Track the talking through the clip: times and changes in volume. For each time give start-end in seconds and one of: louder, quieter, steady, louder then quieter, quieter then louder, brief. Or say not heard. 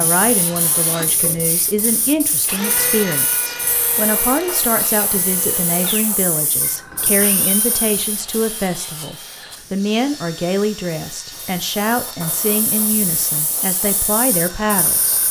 0.0-15.2 steady.